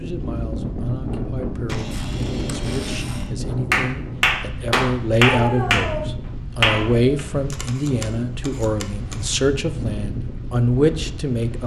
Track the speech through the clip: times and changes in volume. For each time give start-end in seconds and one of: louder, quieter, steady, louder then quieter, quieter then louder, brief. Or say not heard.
0.0-11.6 louder.